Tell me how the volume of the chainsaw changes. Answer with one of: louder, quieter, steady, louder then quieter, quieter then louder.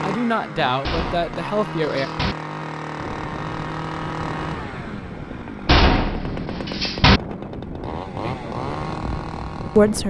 steady.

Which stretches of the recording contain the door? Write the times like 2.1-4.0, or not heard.
0.8-2.4, 5.7-7.2.